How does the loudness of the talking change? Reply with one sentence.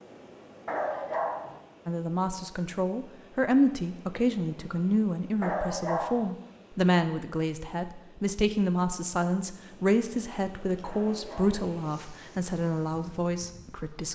The loudness of the talking stays about the same.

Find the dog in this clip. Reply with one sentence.
The dog can be heard from 0.7 to 1.6 s, from 5.4 to 6.3 s and from 10.8 to 11.8 s.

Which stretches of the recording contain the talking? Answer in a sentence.
The talking can be heard from 1.9 to 14.1 s.